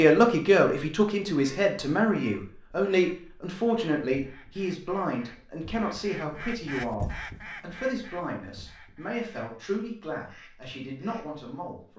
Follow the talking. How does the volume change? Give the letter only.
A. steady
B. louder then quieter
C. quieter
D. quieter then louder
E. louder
C.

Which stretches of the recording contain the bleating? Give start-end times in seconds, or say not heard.
not heard.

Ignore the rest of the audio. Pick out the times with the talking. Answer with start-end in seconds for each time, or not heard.
0.0-11.9.